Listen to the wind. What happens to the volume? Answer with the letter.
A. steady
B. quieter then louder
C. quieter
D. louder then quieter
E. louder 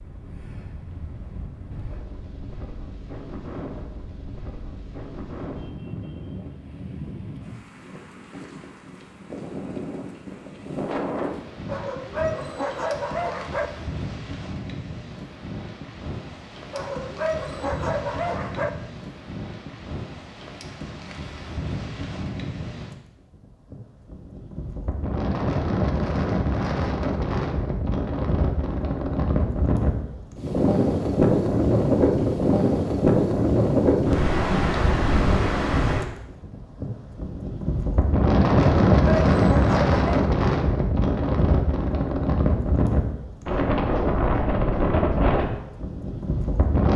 E.